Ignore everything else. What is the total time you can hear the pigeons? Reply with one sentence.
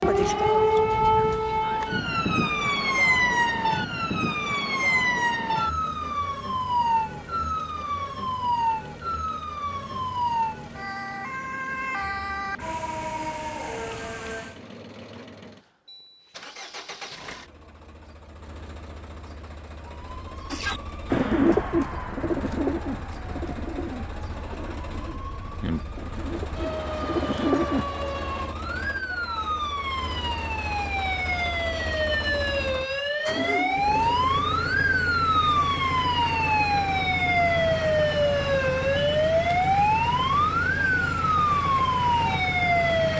The pigeons can be heard for 7 seconds in total.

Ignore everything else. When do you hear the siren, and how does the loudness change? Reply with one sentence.
The siren can be heard from 0.0 to 14.6 s, getting quieter; and from 19.8 to 43.1 s, getting louder.